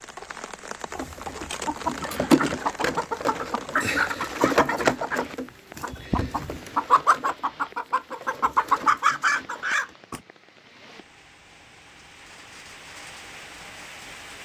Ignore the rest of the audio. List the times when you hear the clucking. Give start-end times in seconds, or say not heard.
0.9-10.2.